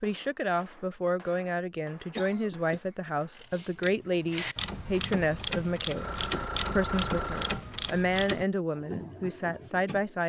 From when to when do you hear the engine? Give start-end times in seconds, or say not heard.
6.0-7.7.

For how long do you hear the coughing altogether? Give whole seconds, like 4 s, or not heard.
2 s.